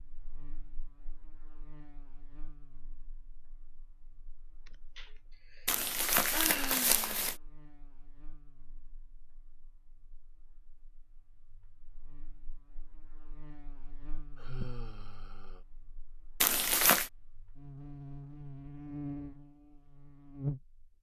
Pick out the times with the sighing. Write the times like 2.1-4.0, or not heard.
4.7-7.2, 14.3-15.6.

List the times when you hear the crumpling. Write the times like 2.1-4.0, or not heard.
5.7-7.3, 16.4-17.1.